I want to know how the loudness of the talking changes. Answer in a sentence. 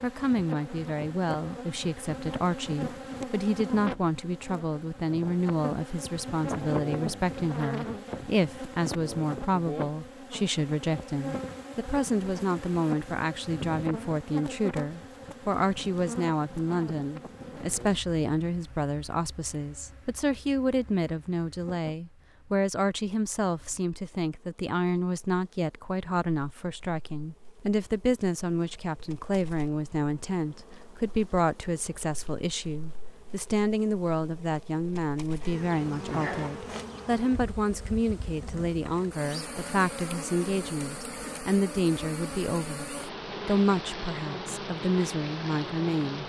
The loudness of the talking stays about the same.